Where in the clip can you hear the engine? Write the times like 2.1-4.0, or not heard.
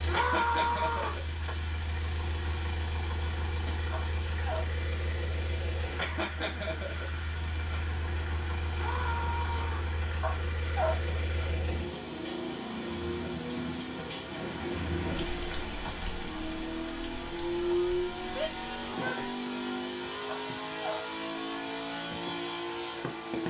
0.0-23.4.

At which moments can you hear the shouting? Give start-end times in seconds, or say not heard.
0.1-1.2, 8.8-9.9, 18.4-19.2.